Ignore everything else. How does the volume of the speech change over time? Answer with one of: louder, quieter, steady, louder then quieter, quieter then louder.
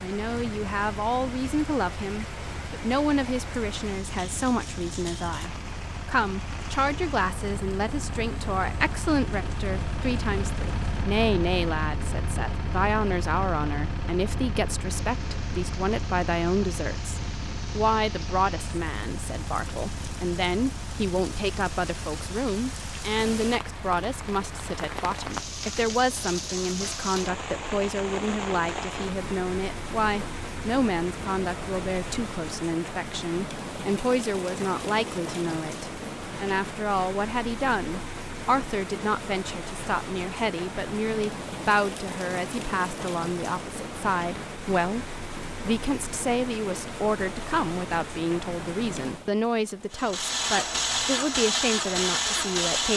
steady.